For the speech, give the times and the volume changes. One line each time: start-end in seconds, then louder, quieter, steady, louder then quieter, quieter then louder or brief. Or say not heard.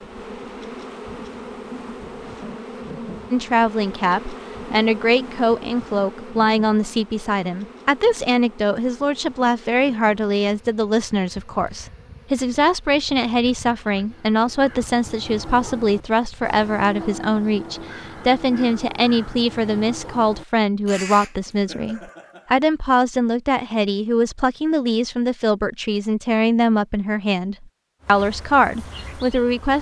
3.3-29.7 steady.